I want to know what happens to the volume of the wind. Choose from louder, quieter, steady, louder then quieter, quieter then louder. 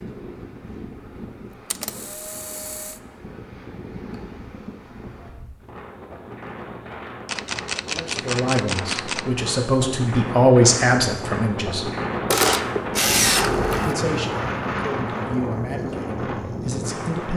louder.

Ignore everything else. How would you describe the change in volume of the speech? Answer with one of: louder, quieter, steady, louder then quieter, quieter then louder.
louder then quieter.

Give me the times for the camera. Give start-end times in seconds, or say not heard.
1.7-3.0, 7.2-9.2, 12.3-13.9.